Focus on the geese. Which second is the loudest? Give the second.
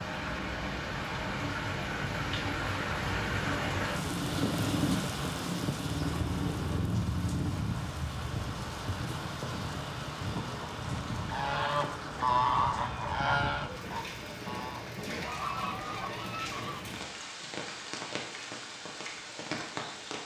12 s.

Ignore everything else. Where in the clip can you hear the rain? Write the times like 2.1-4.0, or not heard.
0.0-20.2.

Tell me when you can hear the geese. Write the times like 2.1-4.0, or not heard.
10.3-16.9.